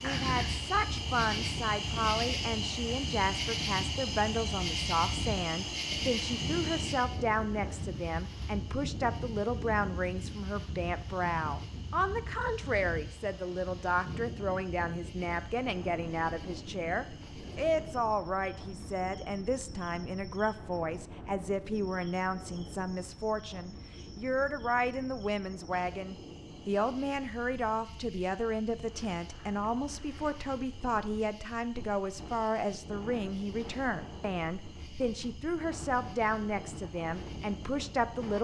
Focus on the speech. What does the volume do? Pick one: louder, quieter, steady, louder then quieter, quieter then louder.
steady.